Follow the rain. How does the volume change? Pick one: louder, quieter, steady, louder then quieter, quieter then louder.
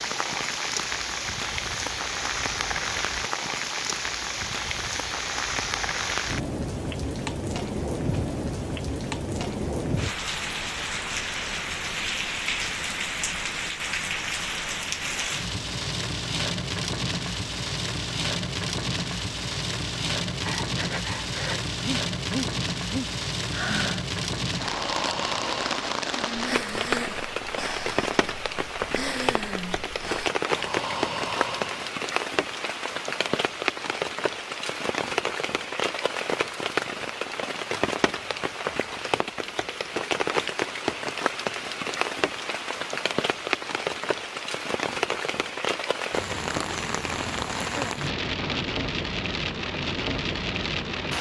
steady.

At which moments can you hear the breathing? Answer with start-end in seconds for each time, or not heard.
20.2-31.9.